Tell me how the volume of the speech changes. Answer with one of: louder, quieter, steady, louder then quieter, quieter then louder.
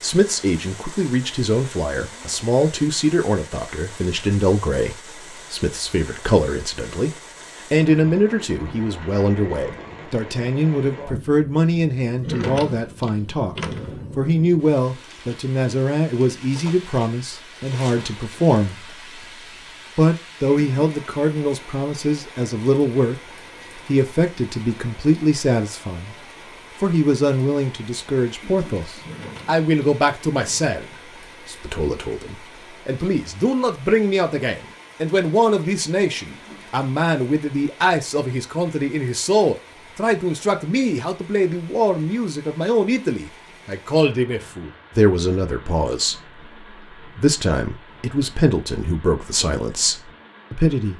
steady.